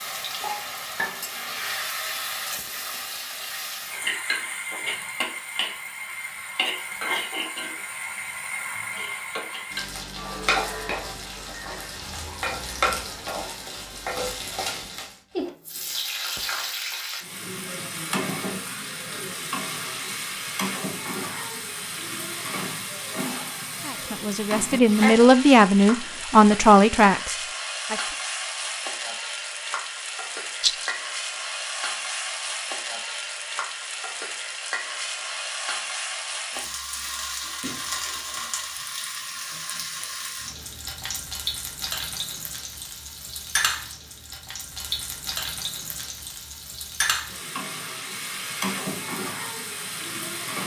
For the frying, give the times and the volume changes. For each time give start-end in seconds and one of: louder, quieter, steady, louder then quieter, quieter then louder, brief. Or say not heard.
0.0-50.6 steady.